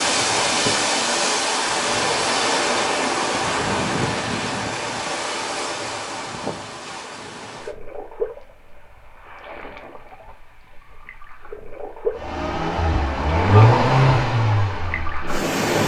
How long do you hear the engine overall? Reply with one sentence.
The engine can be heard for 4 seconds in total.